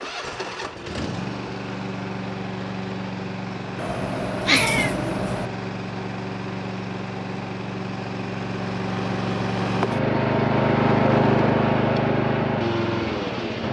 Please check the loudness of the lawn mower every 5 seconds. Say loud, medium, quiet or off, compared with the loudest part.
medium, medium, loud.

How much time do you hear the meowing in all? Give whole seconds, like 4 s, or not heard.
2 s.